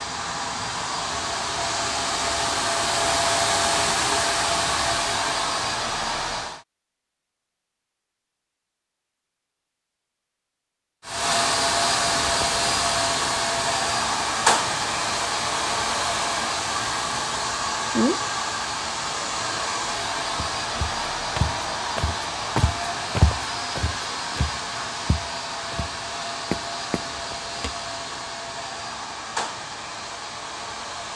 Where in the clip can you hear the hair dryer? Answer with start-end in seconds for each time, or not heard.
0.0-6.7, 11.1-31.1.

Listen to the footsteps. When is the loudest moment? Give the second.
23 s.